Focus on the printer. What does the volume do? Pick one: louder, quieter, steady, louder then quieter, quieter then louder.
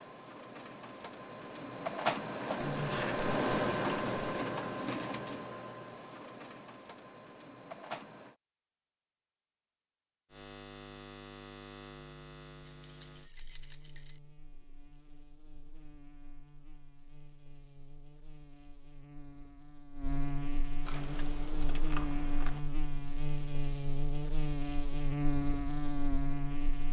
louder then quieter.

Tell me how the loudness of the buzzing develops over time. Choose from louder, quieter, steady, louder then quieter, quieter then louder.
quieter then louder.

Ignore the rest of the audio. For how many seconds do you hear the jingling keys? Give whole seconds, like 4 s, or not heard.
5 s.